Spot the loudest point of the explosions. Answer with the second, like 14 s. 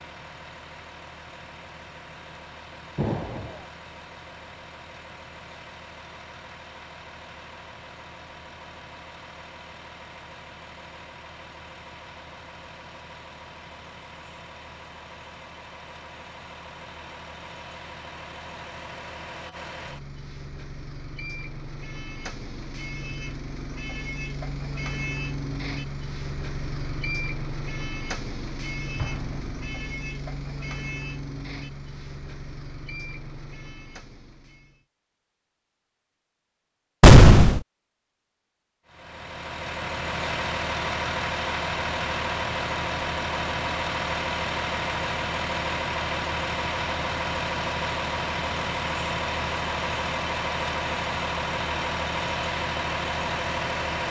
37 s.